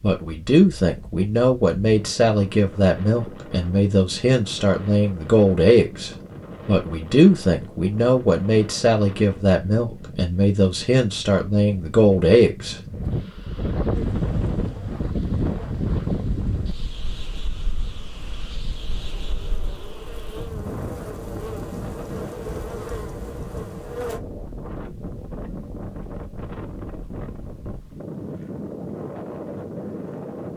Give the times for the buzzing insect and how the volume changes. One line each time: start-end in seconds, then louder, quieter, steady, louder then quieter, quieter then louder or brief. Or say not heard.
13.9-24.2 louder.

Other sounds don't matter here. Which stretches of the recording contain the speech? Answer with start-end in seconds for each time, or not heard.
0.0-12.8.